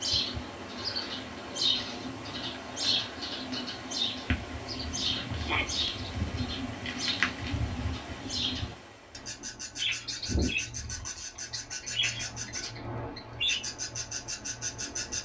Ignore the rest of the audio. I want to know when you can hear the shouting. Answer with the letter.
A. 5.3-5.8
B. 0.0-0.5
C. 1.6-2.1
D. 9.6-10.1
A.